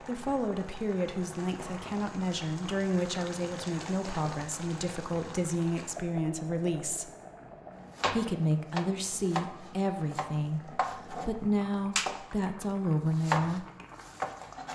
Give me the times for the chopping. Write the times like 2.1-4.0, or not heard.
8.0-11.3, 11.9-14.7.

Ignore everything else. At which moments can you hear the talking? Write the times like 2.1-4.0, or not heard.
0.1-7.1, 8.1-13.7.